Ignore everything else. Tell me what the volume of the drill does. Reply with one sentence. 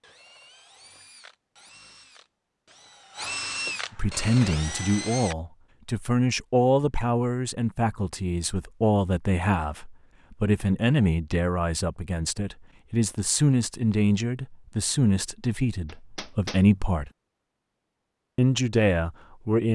The loudness of the drill goes up.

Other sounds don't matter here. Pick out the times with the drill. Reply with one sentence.
You can hear the drill from 0.0 to 5.3 s.